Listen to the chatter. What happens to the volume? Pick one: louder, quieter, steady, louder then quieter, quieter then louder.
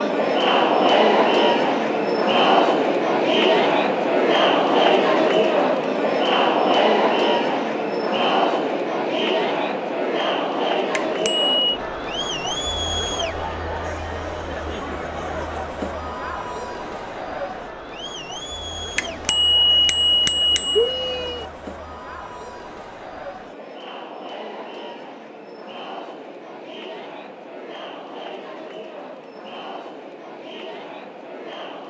quieter.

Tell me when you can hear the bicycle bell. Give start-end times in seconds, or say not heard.
11.1-11.8, 18.9-21.4.